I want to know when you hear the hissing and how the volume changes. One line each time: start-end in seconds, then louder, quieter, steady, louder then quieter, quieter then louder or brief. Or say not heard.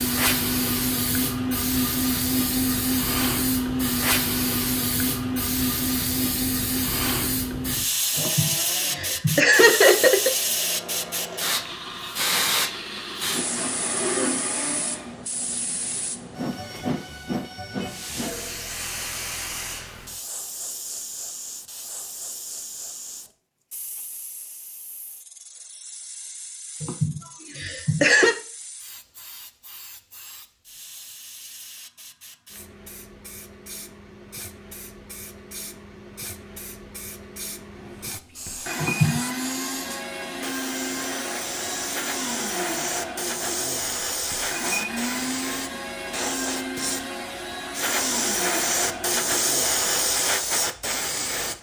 0.0-51.5 quieter then louder.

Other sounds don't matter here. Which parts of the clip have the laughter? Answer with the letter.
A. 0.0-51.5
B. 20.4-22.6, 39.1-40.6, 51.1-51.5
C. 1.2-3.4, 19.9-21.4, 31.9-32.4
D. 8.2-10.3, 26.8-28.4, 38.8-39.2
D.